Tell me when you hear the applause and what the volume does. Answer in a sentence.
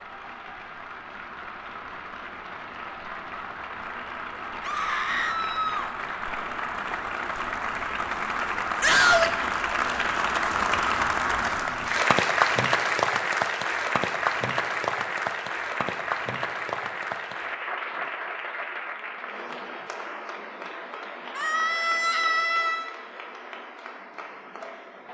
You can hear the applause from 0.0 to 25.0 s, getting louder then quieter.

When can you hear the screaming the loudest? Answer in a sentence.
The volume of the screaming peaks at 9 seconds.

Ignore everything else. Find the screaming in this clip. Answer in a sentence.
You can hear the screaming from 4.6 to 5.9 s, from 8.8 to 9.3 s and from 21.4 to 22.9 s.